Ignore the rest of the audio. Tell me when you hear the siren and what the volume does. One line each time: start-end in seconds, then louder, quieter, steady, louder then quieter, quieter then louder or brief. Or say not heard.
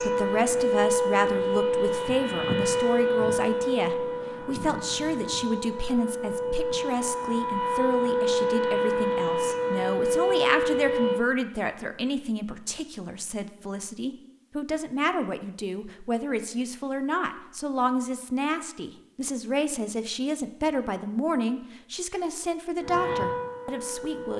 0.0-11.2 quieter then louder
22.8-24.3 brief.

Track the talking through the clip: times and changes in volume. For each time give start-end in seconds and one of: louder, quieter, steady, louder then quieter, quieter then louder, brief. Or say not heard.
0.0-24.3 steady.